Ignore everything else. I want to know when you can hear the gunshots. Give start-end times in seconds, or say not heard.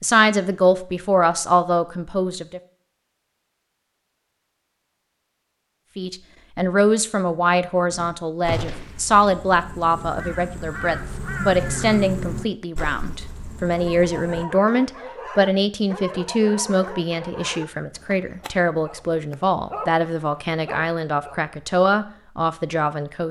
8.4-9.0.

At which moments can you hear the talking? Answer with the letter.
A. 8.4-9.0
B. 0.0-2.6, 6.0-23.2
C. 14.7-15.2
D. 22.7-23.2
B.